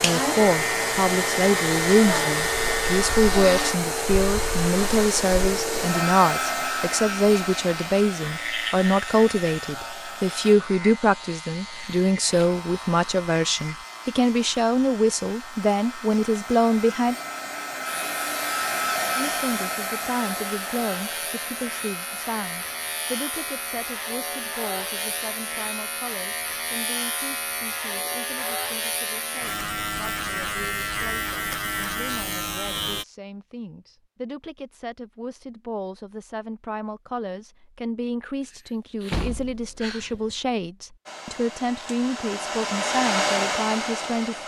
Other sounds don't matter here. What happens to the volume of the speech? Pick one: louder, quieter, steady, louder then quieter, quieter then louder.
quieter then louder.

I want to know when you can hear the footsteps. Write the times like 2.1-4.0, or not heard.
not heard.